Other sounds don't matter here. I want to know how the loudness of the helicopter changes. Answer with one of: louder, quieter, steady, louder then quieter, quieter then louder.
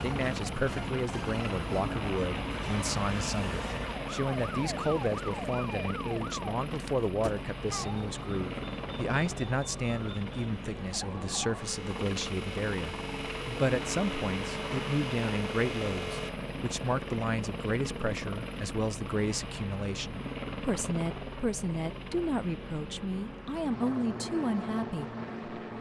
steady.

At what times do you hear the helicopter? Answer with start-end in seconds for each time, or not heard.
0.0-25.7.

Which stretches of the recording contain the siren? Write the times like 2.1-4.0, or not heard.
0.0-16.3.